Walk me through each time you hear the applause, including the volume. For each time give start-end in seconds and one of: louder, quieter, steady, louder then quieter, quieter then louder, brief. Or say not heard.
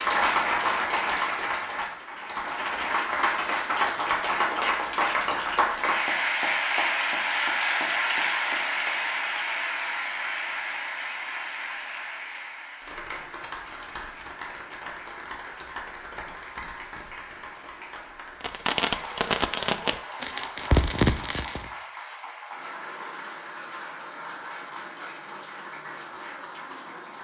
0.0-27.1 quieter.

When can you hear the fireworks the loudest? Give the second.
21 s.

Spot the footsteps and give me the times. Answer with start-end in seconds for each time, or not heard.
not heard.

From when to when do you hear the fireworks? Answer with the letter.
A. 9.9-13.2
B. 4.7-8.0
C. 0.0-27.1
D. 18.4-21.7
D.